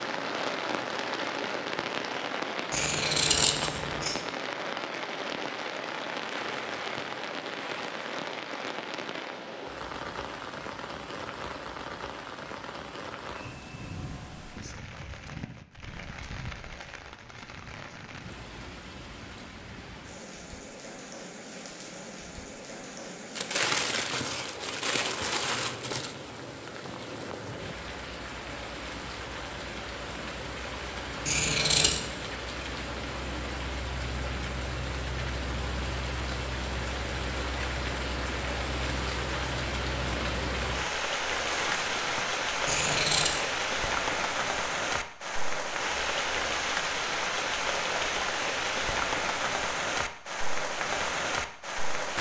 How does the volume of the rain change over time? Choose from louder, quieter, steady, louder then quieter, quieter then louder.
quieter then louder.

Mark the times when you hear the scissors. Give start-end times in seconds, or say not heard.
2.7-4.2, 31.2-32.0, 42.6-43.4.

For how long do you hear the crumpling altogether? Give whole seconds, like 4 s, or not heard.
6 s.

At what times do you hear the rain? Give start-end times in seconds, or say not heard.
0.0-52.1.